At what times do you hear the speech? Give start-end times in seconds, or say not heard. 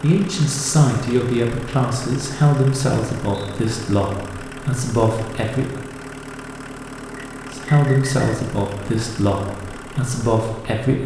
0.0-5.8, 7.5-11.0.